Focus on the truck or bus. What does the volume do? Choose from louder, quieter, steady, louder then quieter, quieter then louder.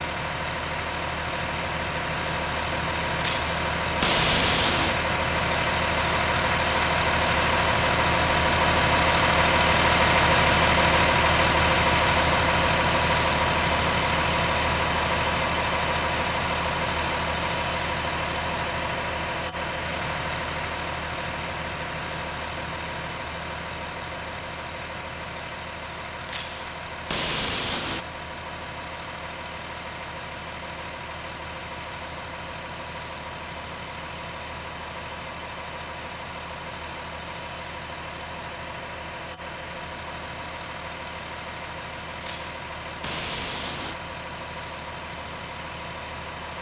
quieter.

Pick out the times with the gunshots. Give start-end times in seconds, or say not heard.
3.2-5.0, 26.2-28.1, 42.2-44.0.